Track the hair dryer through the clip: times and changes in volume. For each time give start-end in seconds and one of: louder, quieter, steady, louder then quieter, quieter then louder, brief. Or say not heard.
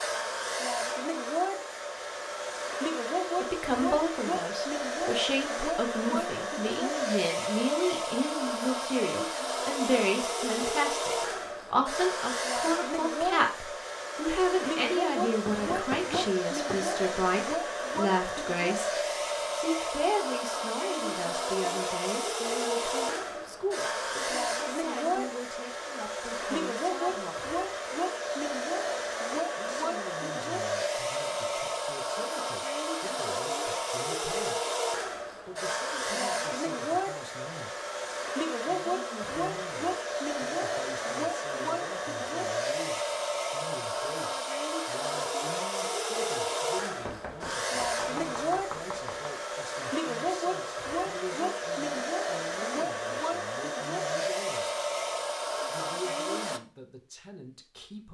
0.0-56.6 steady.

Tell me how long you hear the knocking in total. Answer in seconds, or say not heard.
4 s.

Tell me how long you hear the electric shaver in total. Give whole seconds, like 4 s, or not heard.
not heard.